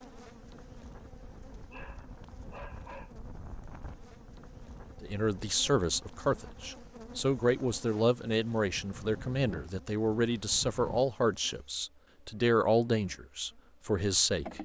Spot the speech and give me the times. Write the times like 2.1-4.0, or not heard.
5.0-14.5.